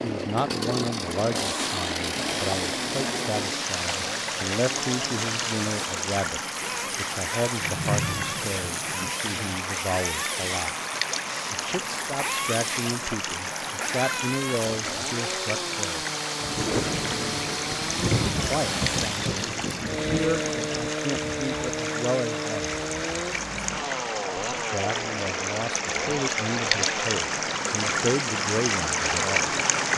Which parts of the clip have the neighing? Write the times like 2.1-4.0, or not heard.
not heard.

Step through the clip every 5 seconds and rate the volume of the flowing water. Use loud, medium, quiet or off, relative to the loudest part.
medium, medium, medium, medium, medium, loud.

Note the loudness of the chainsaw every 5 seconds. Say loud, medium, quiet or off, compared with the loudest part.
loud, loud, loud, loud, loud, medium.